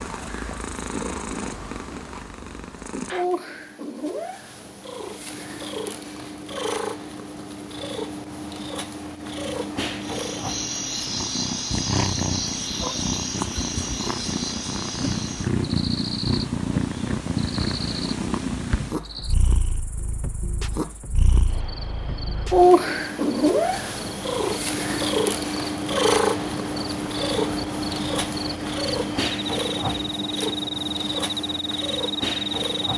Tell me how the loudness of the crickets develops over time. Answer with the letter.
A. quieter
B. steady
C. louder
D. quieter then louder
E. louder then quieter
D.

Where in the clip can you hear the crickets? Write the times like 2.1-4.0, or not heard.
10.0-32.9.